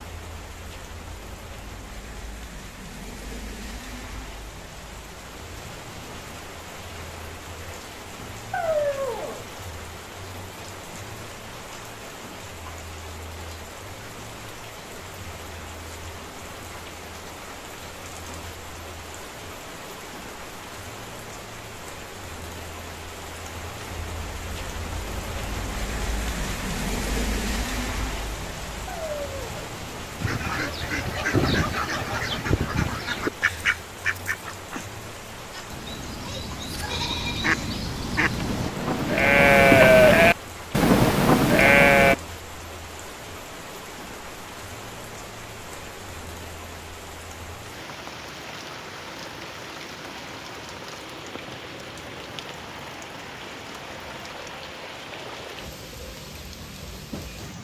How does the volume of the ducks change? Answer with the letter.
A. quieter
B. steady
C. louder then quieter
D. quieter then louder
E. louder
D.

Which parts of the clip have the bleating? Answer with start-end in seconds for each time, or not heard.
35.5-42.1.